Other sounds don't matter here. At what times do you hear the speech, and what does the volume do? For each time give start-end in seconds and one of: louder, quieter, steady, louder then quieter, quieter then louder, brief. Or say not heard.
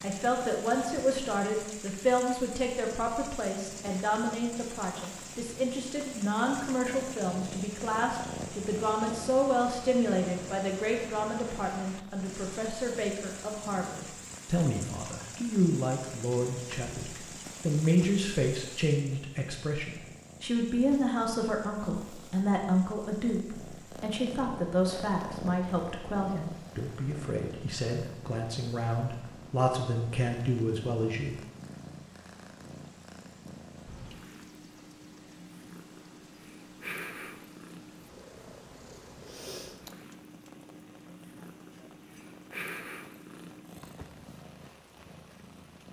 0.0-31.4 steady.